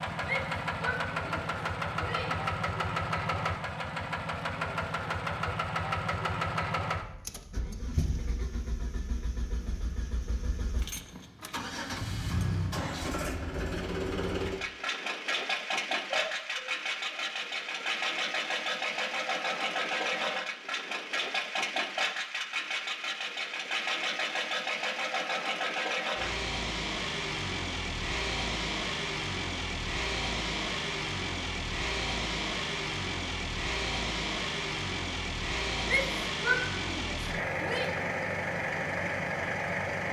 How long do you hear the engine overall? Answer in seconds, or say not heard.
40 s.